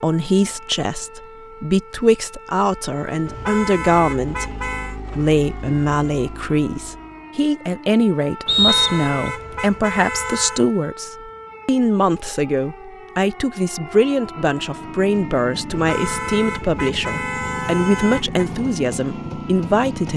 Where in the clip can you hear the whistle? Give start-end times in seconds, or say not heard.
8.4-9.2.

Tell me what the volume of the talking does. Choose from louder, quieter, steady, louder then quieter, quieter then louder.
steady.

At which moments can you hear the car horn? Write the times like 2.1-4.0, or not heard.
3.2-5.0, 8.4-10.7, 15.7-18.4.